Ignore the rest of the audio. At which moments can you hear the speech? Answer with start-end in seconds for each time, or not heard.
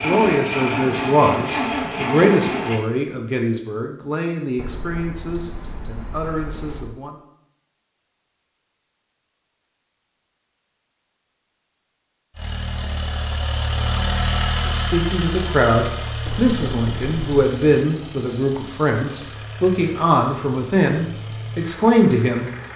0.0-7.2, 14.7-22.5.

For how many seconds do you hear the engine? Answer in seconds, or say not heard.
13 s.